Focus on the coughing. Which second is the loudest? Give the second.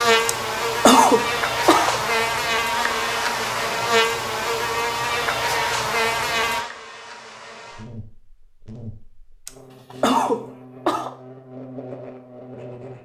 1 s.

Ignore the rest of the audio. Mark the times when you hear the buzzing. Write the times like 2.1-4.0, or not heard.
0.0-12.9.